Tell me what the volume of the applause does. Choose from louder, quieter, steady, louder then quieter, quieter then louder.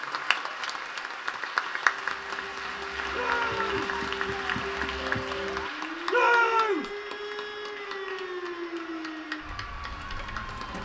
quieter.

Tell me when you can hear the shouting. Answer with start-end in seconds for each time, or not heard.
3.1-3.8, 6.0-6.9.